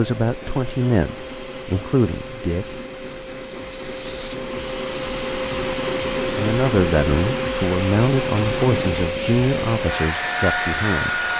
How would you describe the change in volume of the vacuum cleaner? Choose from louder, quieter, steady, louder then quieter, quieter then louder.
louder.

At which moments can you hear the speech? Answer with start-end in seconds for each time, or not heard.
0.0-2.6, 6.3-11.2.